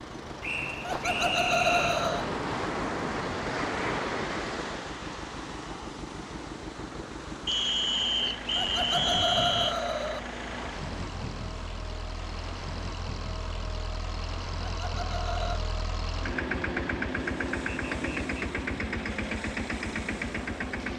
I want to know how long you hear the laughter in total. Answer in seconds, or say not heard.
4 s.